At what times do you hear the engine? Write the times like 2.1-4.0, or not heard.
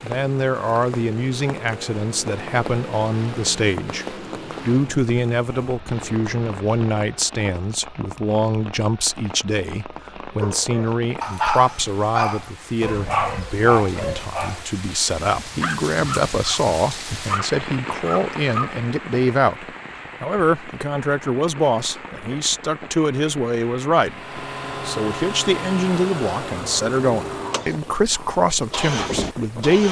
0.0-7.3, 24.0-29.8.